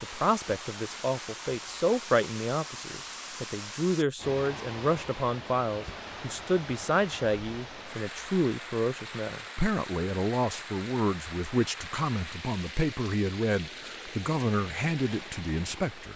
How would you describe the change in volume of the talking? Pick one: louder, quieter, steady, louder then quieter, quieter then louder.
steady.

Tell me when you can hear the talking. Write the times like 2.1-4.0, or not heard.
0.0-16.1.